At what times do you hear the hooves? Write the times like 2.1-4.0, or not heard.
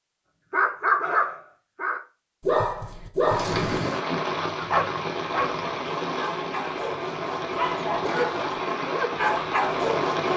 not heard.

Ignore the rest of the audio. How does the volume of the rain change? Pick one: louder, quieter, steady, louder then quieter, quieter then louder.
steady.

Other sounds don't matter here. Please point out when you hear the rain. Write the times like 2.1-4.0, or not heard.
3.2-10.3.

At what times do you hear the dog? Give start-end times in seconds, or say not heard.
0.5-10.3.